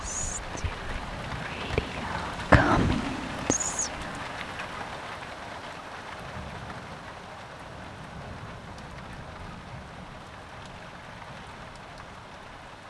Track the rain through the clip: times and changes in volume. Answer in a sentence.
The rain can be heard from 0.0 to 12.8 s, getting quieter.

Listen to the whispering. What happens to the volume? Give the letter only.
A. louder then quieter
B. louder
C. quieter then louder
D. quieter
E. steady
A.